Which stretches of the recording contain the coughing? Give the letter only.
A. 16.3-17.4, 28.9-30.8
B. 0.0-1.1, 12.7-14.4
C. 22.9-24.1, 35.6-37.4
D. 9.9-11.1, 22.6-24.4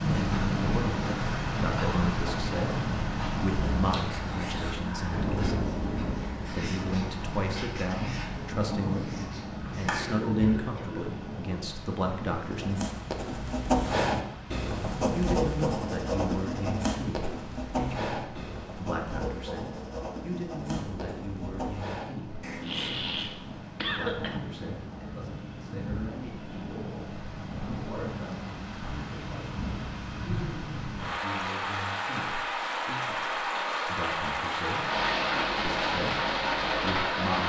D.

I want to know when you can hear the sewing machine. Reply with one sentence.
You can't hear the sewing machine here.